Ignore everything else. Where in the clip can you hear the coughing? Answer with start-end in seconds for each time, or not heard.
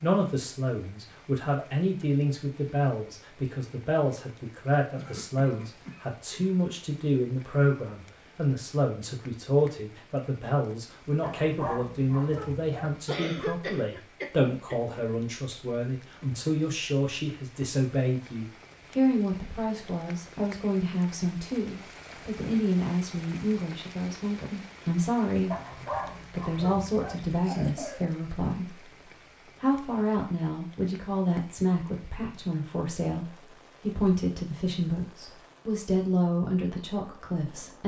5.0-6.5, 13.1-14.9, 27.4-28.0.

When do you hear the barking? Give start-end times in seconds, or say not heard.
11.2-12.9, 25.5-27.2.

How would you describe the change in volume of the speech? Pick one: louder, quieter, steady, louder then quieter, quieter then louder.
steady.